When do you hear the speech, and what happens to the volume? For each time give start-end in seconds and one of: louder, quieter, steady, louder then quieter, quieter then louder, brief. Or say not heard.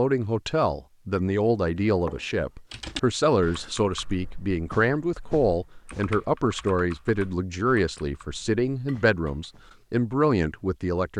0.0-11.1 steady.